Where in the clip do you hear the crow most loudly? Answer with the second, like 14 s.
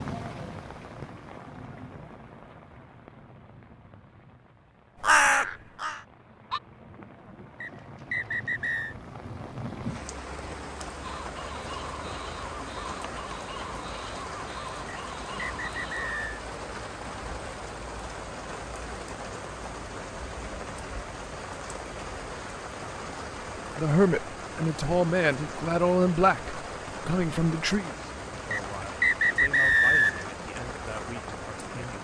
5 s.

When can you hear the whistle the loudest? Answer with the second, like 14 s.
30 s.